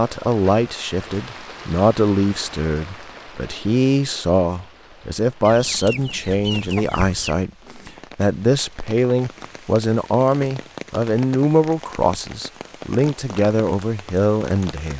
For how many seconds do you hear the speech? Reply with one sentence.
You can hear the speech for 15 seconds altogether.